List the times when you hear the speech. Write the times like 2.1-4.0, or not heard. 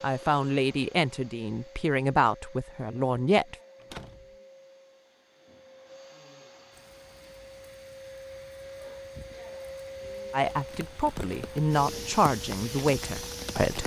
0.0-3.5, 10.3-13.8.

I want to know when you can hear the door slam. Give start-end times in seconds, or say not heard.
3.8-4.3.